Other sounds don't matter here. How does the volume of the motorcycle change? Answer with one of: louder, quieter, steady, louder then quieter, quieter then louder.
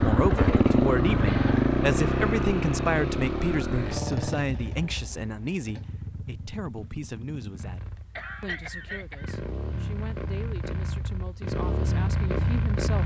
quieter then louder.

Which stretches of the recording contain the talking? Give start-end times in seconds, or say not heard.
0.0-13.0.